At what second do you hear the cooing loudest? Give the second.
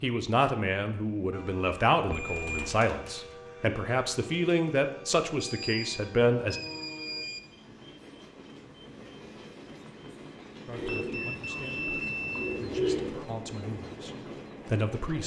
13 s.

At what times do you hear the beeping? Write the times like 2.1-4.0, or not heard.
2.1-2.8, 5.4-7.4, 10.8-12.6.